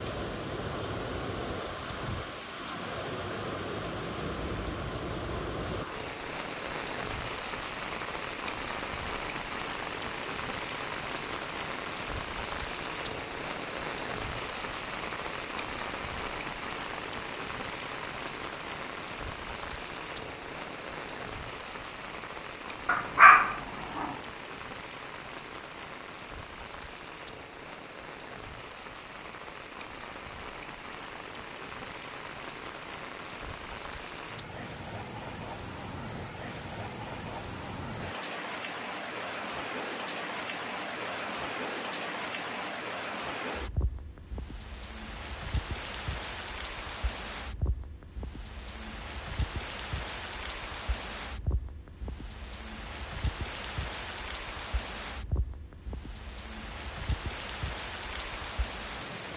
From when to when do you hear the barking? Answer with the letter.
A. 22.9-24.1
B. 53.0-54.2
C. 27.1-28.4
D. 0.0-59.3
A.